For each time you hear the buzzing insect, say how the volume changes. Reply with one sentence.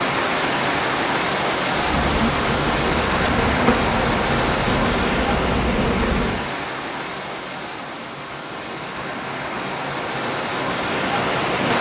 You can hear the buzzing insect from 1.8 to 6.5 s, at a steady volume.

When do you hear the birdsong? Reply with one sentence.
The birdsong can't be heard in this clip.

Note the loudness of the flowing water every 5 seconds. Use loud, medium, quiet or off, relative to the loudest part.
loud, medium, loud.